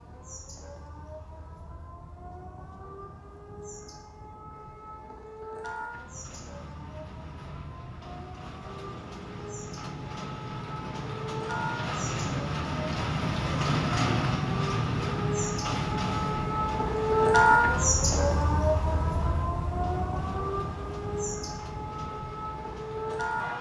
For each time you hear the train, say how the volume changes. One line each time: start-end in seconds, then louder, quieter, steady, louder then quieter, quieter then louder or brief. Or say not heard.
5.8-23.5 louder then quieter.